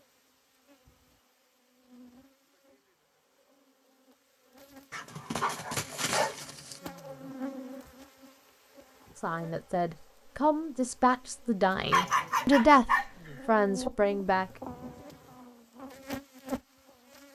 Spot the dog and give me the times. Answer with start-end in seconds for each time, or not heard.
4.9-6.8, 11.9-13.1.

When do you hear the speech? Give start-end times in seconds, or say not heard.
9.2-14.6.